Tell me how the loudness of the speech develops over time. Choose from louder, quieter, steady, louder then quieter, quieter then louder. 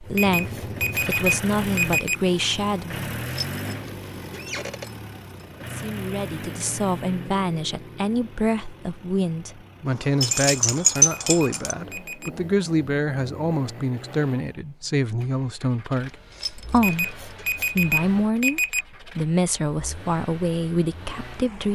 steady.